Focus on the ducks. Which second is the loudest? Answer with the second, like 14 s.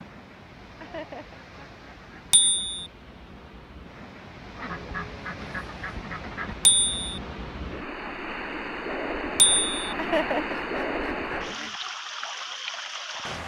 10 s.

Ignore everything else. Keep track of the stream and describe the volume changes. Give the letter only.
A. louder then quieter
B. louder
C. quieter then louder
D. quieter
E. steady
B.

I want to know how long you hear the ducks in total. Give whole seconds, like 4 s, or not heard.
6 s.